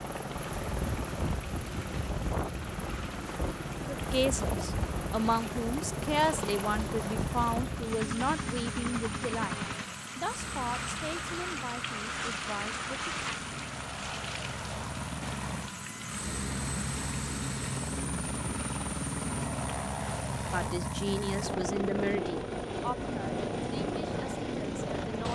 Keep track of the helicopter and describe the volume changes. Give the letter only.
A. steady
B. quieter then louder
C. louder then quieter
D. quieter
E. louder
B.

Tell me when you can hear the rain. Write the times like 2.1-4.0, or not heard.
0.0-20.7.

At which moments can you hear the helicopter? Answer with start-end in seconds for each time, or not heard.
0.0-25.3.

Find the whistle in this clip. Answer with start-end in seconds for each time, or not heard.
not heard.